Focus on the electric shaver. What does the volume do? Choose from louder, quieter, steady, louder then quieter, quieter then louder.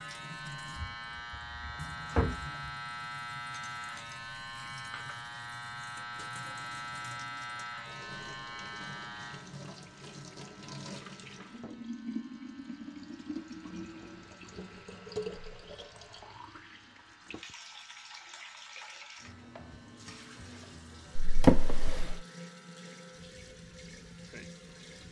quieter.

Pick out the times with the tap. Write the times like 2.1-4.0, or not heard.
0.0-25.0.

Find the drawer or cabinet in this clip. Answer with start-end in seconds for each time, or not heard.
0.8-2.5, 21.1-22.2.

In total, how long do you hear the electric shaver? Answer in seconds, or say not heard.
25 s.